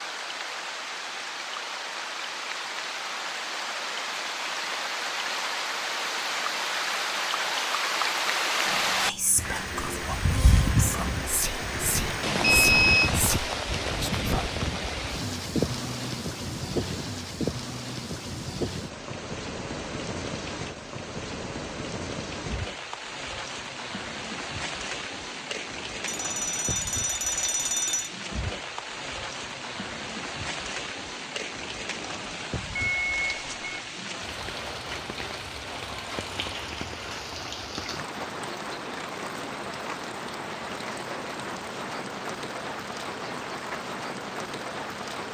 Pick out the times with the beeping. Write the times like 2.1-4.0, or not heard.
12.4-13.1, 26.1-28.1, 32.8-33.9.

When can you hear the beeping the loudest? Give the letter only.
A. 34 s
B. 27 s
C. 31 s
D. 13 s
D.